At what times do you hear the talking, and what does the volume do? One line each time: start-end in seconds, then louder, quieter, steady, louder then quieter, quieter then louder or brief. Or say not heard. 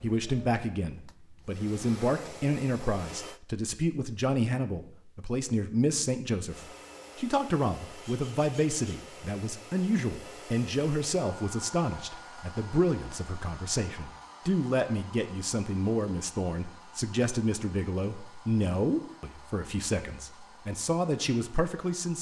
0.0-22.1 steady.